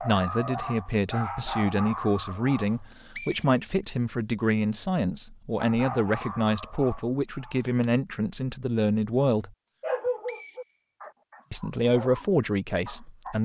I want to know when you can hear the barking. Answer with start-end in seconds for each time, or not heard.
0.0-3.0, 5.5-7.8, 9.8-13.4.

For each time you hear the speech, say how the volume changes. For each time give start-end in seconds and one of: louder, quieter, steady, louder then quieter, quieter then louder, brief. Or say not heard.
0.0-9.5 steady
11.5-13.4 brief.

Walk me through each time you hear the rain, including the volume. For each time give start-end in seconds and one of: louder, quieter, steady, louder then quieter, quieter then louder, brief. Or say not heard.
not heard.